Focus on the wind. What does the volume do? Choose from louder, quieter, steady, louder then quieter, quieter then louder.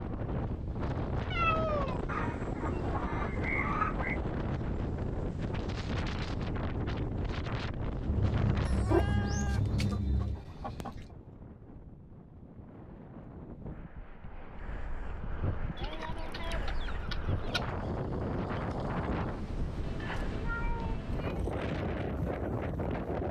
quieter then louder.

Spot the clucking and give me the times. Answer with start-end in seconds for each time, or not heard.
2.0-4.2, 8.7-11.1, 15.8-17.6.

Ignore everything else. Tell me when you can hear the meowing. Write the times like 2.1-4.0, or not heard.
1.3-3.0, 8.1-10.4, 20.0-21.4.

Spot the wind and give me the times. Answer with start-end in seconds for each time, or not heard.
0.0-23.2.